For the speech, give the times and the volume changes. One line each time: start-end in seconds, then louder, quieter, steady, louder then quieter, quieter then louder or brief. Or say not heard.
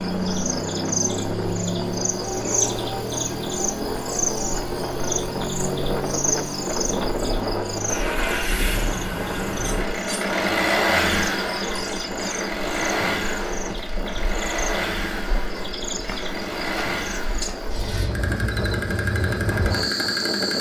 not heard.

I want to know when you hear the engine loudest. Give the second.
11 s.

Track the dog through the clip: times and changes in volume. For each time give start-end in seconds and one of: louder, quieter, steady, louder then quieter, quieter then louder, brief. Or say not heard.
not heard.